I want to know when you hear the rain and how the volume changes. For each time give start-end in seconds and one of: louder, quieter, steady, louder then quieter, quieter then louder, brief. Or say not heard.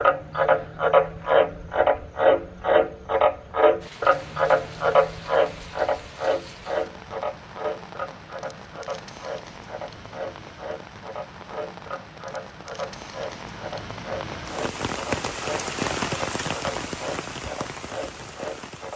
3.8-18.9 louder.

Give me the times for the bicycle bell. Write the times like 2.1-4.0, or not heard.
not heard.